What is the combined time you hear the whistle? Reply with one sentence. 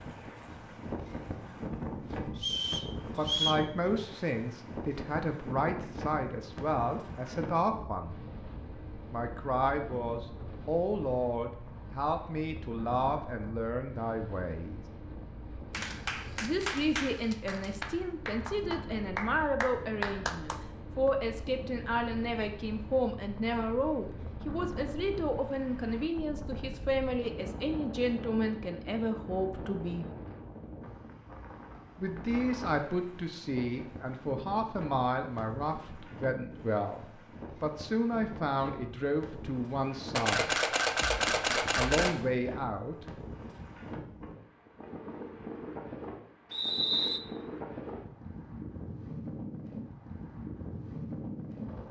You can hear the whistle for 2 seconds altogether.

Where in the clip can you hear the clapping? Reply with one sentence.
You can hear the clapping from 15.7 to 21.1 s.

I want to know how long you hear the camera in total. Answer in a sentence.
The camera can be heard for 4 seconds in total.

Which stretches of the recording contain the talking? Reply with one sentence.
The talking can be heard from 3.0 to 8.2 s, from 9.1 to 14.8 s, from 16.4 to 30.1 s, from 31.9 to 40.6 s and from 41.5 to 43.0 s.